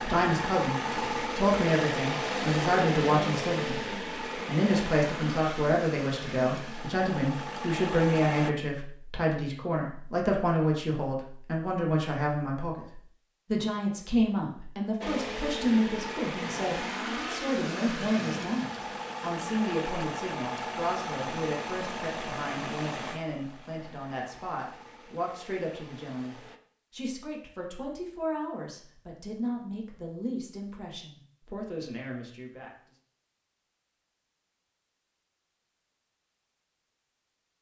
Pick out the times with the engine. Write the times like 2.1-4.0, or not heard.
0.0-8.5, 15.0-26.6.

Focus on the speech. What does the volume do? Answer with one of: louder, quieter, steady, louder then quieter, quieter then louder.
quieter.